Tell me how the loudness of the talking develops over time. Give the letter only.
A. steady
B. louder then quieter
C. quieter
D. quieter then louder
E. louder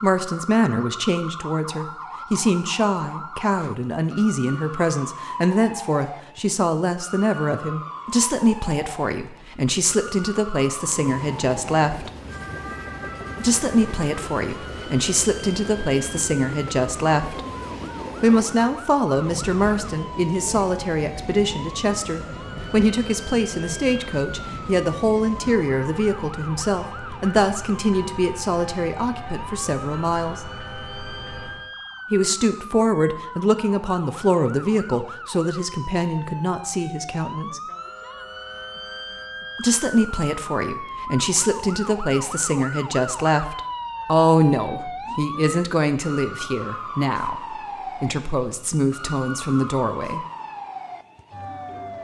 A.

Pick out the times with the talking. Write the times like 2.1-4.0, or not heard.
0.0-12.1, 13.4-17.4, 18.2-30.5, 32.1-37.6, 39.5-50.2.